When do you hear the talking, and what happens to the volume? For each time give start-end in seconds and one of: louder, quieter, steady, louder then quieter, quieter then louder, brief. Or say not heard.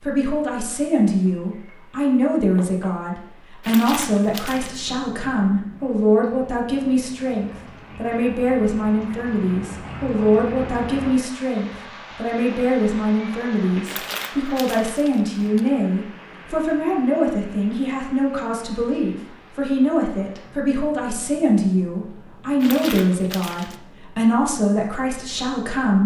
0.0-26.0 steady.